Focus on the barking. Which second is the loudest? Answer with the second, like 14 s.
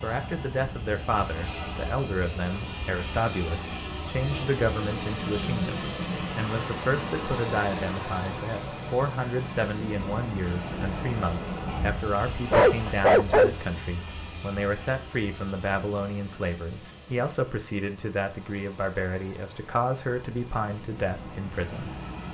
13 s.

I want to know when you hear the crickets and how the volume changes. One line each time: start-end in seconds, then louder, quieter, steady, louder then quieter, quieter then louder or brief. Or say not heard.
0.0-22.2 louder then quieter.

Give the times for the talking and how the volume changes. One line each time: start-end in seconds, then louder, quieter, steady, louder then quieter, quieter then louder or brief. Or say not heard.
0.0-21.9 steady.